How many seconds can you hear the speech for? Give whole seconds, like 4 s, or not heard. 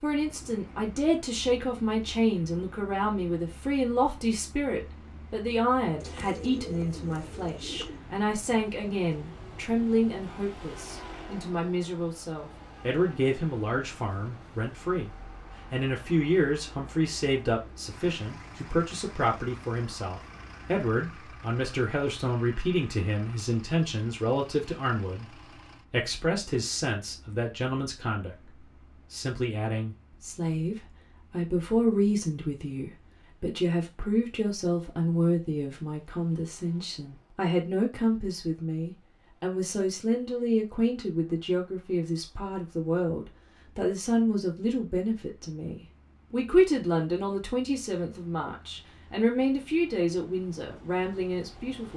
52 s.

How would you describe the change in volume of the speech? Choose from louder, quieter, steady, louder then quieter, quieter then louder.
steady.